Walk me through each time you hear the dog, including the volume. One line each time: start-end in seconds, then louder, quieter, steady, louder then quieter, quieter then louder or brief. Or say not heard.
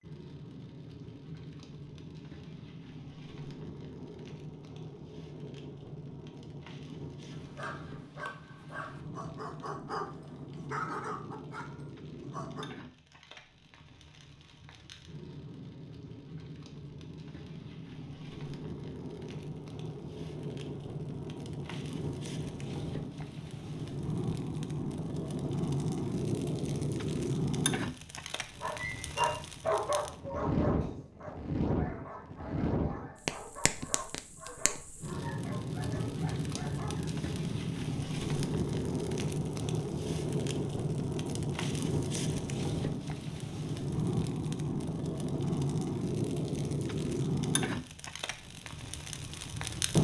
7.3-12.7 louder then quieter
28.4-37.1 quieter.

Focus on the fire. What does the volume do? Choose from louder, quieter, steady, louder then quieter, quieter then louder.
louder.